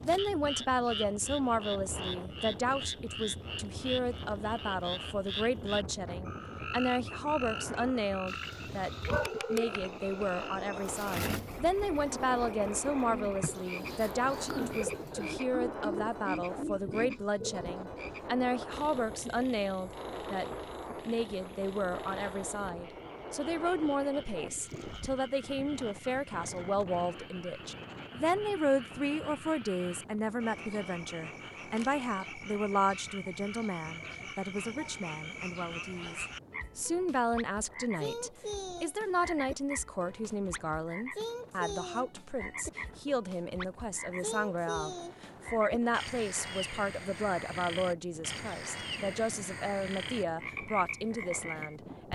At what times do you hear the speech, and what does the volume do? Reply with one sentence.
You can hear the speech from 0.0 to 52.0 s, at a steady volume.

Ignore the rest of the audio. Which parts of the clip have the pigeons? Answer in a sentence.
You can hear the pigeons from 10.8 to 17.7 s.